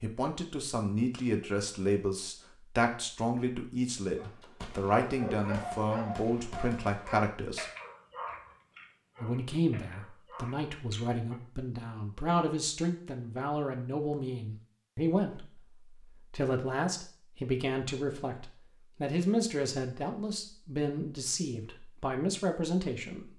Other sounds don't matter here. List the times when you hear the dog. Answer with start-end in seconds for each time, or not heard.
4.2-11.4.